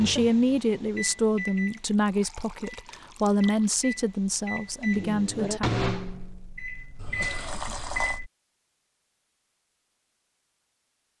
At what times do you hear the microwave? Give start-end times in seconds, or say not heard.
0.0-8.3.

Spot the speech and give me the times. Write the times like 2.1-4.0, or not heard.
0.0-5.8.